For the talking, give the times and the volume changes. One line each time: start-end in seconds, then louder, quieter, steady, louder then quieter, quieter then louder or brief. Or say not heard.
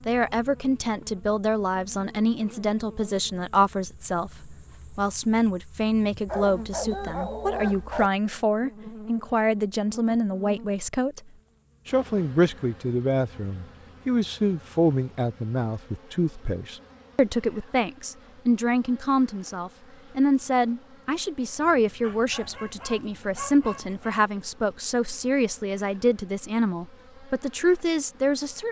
0.1-11.2 steady
11.8-28.6 steady.